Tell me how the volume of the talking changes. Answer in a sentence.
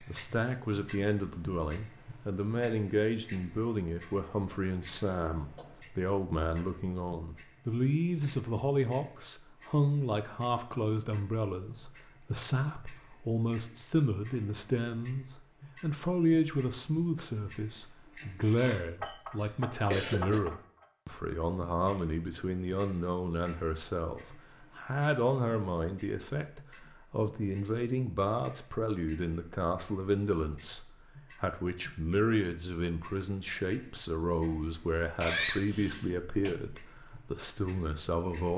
The loudness of the talking stays about the same.